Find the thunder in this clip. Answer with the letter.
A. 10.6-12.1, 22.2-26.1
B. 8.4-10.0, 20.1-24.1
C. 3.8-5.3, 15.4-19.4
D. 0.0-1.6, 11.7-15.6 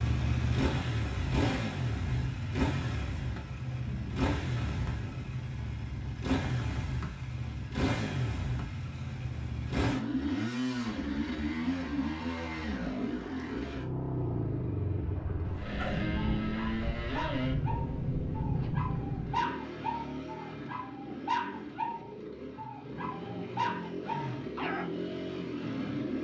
C.